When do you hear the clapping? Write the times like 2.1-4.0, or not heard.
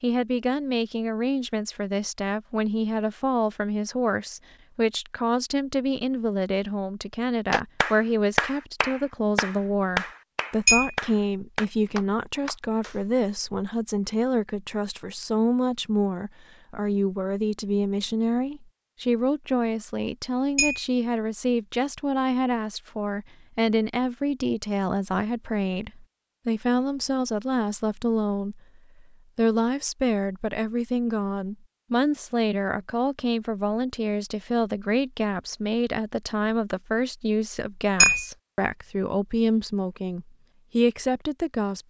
7.5-13.0.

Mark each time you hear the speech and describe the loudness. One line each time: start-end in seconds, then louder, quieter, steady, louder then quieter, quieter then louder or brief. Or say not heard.
0.0-41.8 steady.